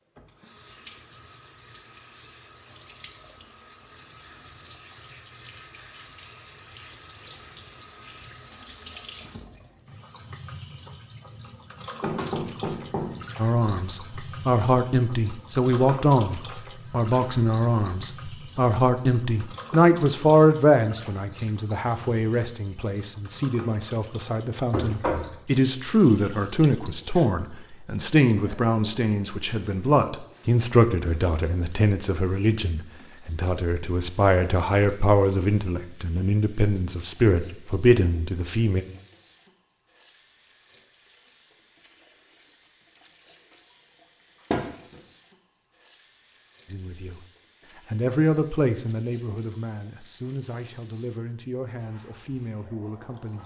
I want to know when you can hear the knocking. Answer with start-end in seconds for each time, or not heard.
12.0-13.2, 24.7-25.4, 44.5-45.0.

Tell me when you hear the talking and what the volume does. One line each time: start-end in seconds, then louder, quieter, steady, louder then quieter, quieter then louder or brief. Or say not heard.
13.3-38.9 steady
46.6-47.2 brief
47.9-53.4 quieter.